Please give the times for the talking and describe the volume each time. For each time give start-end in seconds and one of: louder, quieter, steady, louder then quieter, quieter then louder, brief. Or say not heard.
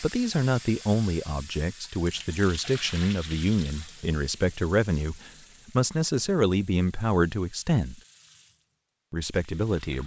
0.0-8.0 steady
9.1-10.0 brief.